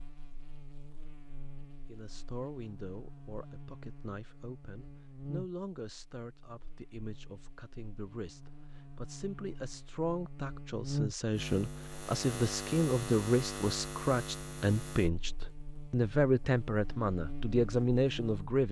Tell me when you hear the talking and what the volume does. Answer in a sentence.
You can hear the talking from 1.9 to 18.6 s, getting louder.